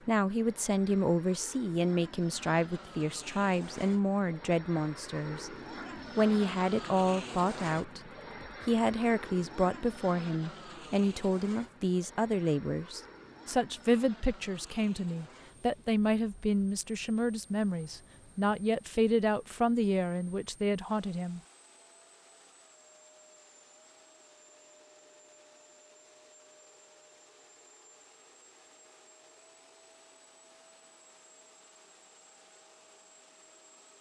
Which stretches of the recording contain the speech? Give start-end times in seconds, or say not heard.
0.1-5.5, 6.2-21.4.